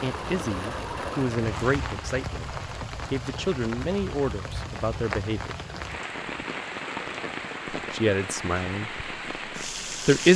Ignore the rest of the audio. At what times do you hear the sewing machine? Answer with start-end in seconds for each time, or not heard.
0.0-2.0.